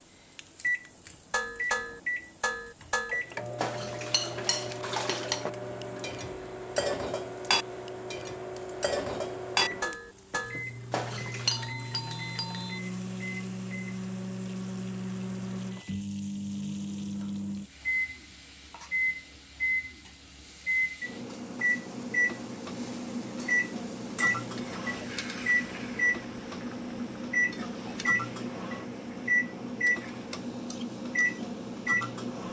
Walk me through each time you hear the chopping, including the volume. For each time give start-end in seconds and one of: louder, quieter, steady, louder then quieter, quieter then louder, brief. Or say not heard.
not heard.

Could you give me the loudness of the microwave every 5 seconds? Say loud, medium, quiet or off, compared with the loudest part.
medium, medium, medium, loud, loud, loud, loud.